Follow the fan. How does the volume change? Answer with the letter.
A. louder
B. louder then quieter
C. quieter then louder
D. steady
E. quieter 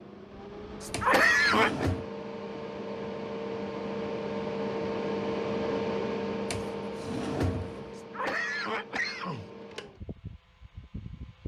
B.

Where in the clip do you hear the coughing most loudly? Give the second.
1 s.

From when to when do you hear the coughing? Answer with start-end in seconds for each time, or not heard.
0.8-1.9, 8.0-9.5.